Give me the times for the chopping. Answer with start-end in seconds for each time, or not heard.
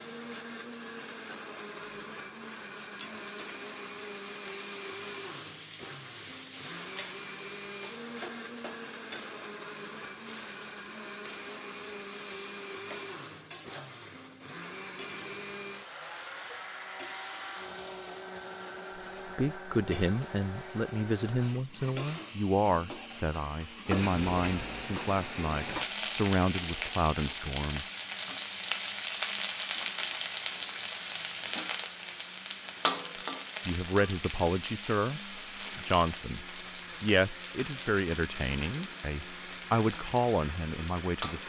not heard.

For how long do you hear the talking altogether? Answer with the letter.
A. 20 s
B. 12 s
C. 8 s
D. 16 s
D.